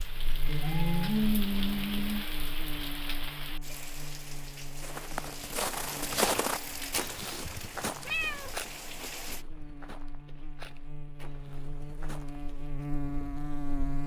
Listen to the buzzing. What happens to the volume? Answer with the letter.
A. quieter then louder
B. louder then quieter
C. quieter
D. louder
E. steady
A.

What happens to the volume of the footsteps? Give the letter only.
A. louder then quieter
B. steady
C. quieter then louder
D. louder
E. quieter
E.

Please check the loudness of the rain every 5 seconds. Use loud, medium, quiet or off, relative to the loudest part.
loud, loud, off.